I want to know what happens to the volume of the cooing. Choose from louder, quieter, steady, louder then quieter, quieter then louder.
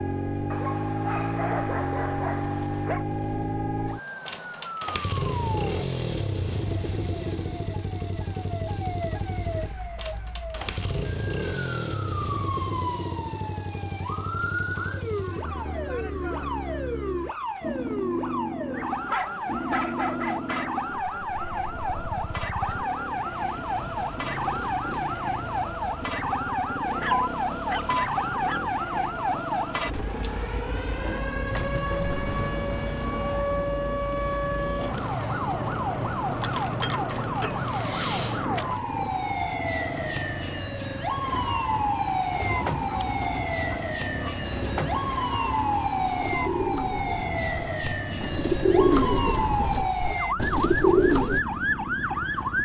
louder.